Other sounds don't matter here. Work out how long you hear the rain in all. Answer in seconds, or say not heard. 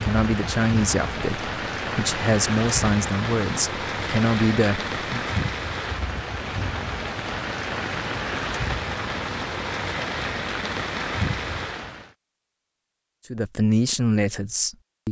12 s.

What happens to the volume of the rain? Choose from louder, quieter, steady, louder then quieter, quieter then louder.
steady.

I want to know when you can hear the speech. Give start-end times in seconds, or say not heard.
0.0-5.3, 13.3-15.0.